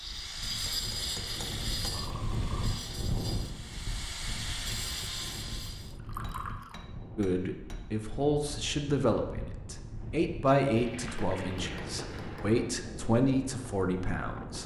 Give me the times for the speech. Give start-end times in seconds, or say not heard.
7.2-14.6.